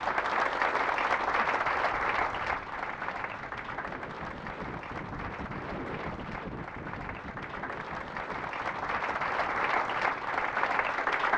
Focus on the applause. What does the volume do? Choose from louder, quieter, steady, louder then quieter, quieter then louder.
quieter then louder.